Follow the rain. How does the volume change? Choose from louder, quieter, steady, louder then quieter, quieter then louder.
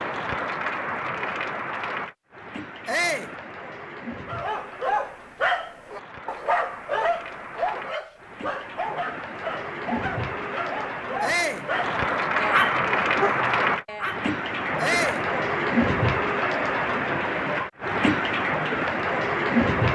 quieter then louder.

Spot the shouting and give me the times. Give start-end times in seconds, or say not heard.
2.9-3.3, 11.2-11.7, 14.8-15.2.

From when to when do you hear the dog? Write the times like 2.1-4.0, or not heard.
4.2-14.2.